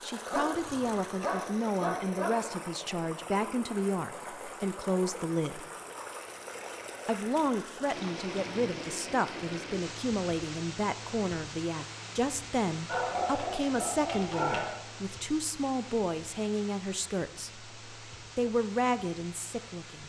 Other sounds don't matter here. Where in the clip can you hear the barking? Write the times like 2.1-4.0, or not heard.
0.3-2.3, 12.8-14.8.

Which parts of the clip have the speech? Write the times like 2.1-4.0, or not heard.
0.0-5.7, 7.0-20.0.